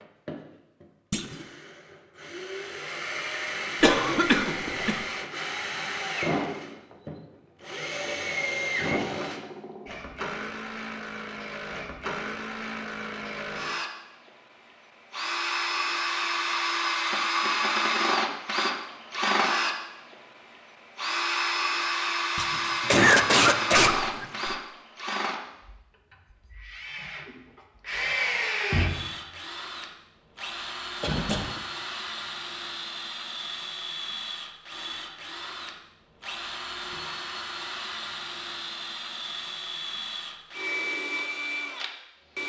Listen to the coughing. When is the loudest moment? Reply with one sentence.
The loudest moment of the coughing is at 23 seconds.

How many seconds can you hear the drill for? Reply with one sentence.
You can hear the drill for 40 seconds altogether.